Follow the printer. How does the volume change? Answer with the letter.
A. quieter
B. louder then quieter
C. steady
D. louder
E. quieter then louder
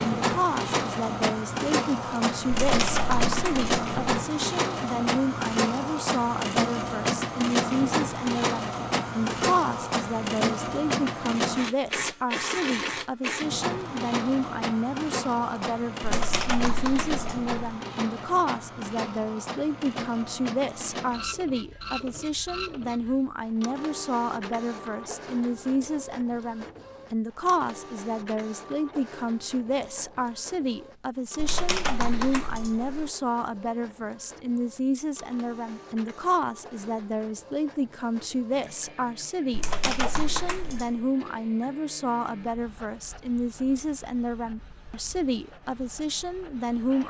A.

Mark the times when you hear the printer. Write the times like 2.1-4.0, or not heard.
0.0-47.0.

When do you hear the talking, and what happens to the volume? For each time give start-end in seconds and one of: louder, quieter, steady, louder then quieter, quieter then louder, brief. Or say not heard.
0.1-47.0 steady.